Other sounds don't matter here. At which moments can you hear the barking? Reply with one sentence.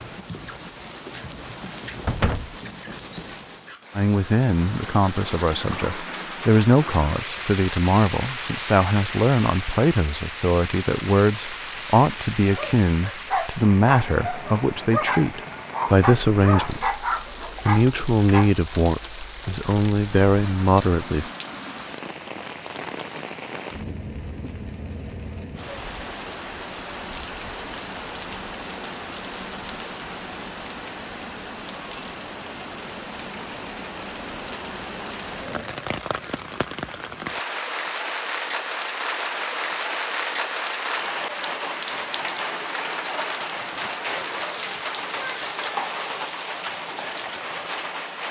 You can hear the barking from 12.3 to 18.5 s.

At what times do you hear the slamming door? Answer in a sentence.
The slamming door can be heard from 2.0 to 2.5 s.